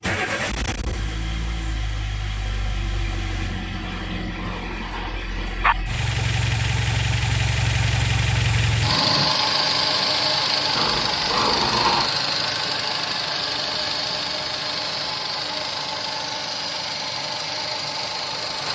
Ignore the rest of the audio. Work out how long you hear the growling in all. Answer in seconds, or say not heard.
3 s.